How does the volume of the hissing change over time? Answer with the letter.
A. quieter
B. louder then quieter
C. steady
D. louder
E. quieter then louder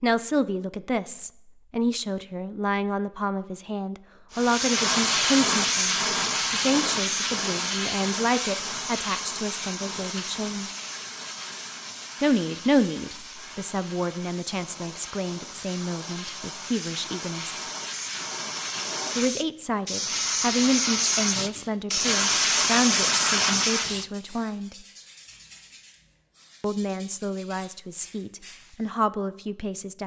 E.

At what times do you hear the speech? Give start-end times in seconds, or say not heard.
0.0-10.7, 12.2-17.6, 19.1-24.8, 26.6-30.0.